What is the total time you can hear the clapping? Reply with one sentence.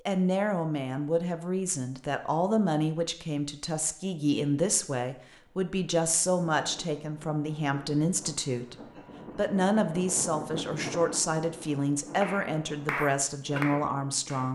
The clapping can be heard for 2 seconds in total.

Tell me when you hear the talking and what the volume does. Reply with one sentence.
The talking can be heard from 0.1 to 14.5 s, at a steady volume.